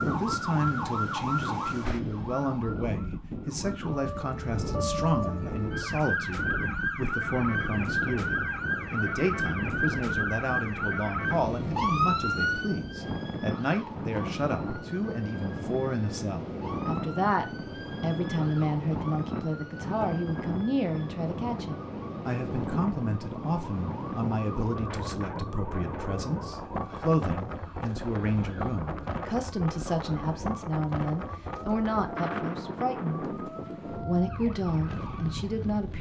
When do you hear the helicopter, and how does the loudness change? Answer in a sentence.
You can't hear the helicopter here.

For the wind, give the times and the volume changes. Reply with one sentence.
You can hear the wind from 0.0 to 35.9 s, at a steady volume.